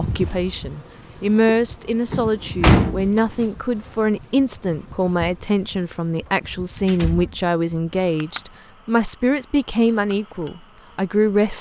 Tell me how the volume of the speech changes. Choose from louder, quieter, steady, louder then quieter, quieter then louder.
steady.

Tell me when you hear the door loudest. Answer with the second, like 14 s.
3 s.